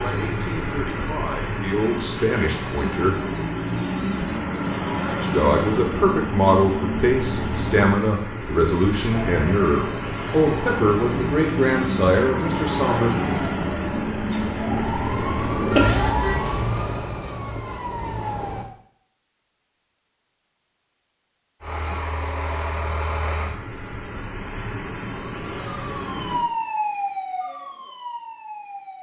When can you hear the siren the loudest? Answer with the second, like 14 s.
16 s.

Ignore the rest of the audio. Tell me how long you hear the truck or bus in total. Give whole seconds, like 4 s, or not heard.
21 s.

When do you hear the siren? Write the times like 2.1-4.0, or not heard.
9.1-18.6, 25.1-28.9.